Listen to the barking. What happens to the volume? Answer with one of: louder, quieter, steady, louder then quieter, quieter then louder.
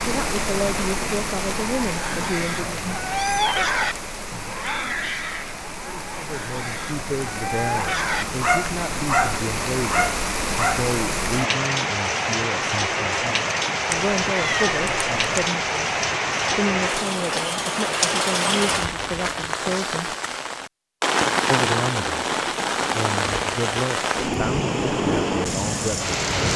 quieter then louder.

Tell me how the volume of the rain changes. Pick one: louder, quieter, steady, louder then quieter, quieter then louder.
louder.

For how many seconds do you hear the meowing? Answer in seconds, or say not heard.
2 s.